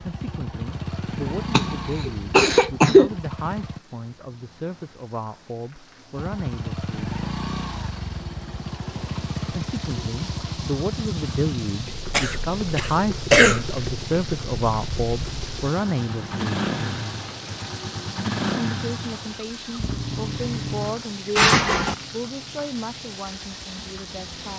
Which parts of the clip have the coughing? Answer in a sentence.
The coughing can be heard from 1.5 to 3.1 s, from 12.1 to 13.6 s and from 21.4 to 21.9 s.